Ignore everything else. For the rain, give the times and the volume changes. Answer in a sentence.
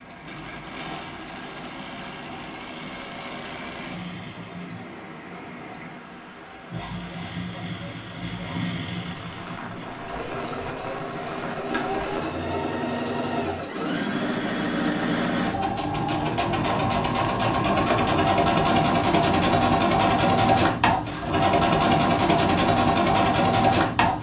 You can hear the rain from 0.0 to 12.4 s, getting louder.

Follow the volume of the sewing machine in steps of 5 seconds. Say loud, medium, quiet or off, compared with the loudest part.
quiet, quiet, medium, loud, loud.